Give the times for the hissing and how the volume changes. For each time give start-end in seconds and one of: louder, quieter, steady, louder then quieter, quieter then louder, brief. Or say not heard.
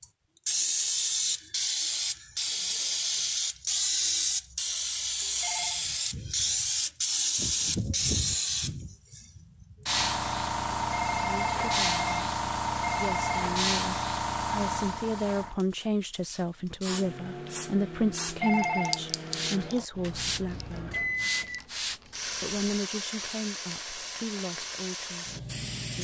0.0-25.9 quieter.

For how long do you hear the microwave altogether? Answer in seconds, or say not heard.
6 s.